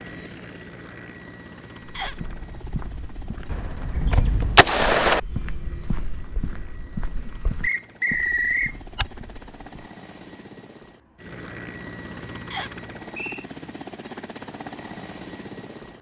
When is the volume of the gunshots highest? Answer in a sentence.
The volume of the gunshots peaks at 5 seconds.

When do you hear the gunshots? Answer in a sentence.
The gunshots can be heard from 3.5 to 5.2 s.